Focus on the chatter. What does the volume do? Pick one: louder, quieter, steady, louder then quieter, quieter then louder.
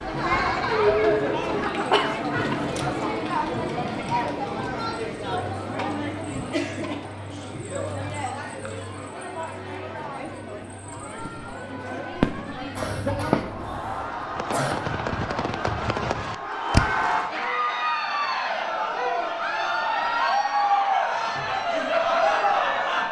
quieter then louder.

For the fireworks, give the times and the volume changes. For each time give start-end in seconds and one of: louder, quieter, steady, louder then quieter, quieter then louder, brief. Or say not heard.
11.2-16.9 quieter then louder.